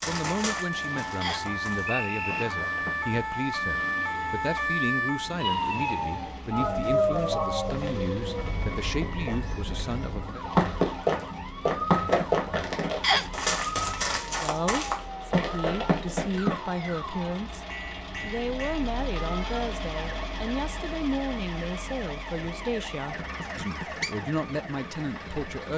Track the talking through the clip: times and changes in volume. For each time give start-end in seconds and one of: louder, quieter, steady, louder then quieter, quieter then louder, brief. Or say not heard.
0.1-10.4 steady
14.2-25.7 steady.